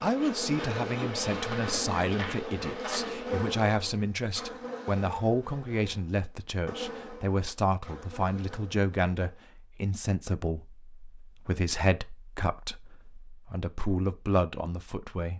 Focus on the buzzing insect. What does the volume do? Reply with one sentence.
The loudness of the buzzing insect goes down.